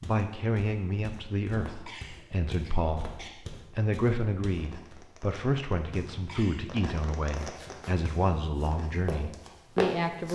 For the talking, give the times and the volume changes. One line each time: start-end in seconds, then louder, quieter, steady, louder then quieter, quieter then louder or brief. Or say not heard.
0.0-10.2 steady.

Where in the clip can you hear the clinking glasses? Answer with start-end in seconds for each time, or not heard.
not heard.